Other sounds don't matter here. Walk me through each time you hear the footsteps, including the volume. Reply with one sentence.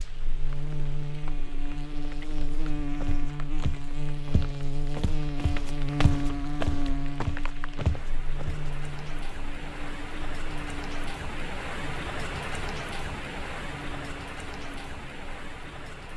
The footsteps can be heard from 2.6 to 8.6 s, getting louder.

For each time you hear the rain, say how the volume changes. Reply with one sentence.
The rain can be heard from 0.0 to 16.1 s, getting louder.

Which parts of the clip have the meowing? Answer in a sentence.
The meowing can't be heard in this clip.